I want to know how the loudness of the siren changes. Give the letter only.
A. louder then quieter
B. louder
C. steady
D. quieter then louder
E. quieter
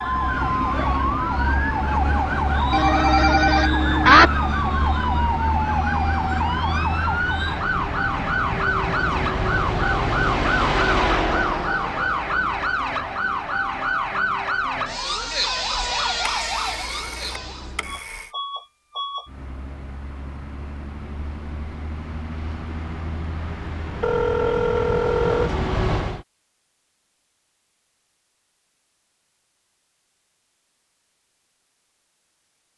C.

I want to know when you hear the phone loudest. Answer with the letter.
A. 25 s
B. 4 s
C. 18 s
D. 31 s
B.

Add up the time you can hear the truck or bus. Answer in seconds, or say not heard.
26 s.